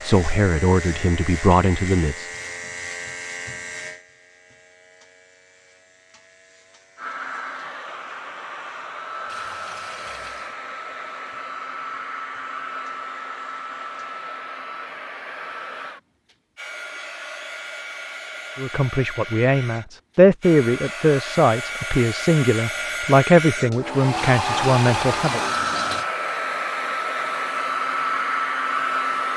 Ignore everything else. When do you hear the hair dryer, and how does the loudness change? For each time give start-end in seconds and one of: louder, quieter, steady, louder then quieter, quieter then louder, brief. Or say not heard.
7.0-29.3 louder.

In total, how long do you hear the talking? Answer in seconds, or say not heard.
9 s.